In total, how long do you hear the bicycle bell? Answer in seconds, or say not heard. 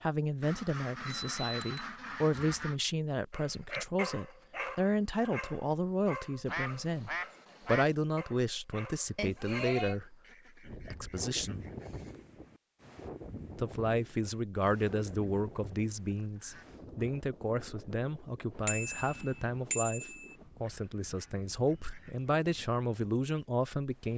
3 s.